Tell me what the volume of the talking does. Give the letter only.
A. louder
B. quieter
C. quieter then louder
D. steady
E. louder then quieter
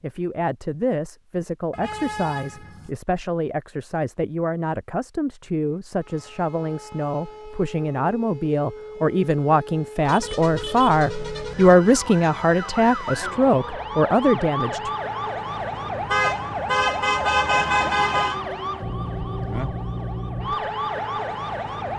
A.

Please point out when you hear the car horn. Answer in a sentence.
The car horn can be heard from 1.7 to 2.9 s, from 10.1 to 11.8 s and from 16.1 to 18.4 s.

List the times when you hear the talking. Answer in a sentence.
You can hear the talking from 0.0 to 14.9 s.